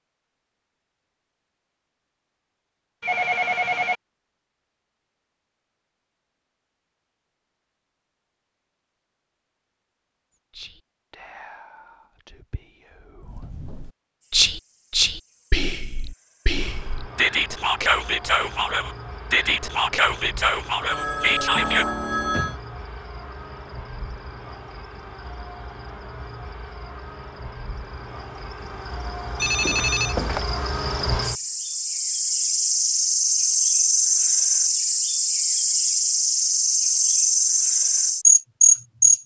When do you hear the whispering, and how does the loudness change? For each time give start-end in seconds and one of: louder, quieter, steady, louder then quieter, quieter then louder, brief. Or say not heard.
10.3-21.9 louder.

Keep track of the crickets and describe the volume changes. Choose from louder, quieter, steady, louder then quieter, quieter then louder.
louder.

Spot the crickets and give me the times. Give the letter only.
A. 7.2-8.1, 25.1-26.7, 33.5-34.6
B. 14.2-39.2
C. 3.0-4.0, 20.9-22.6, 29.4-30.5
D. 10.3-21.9
B.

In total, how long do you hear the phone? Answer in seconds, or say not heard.
4 s.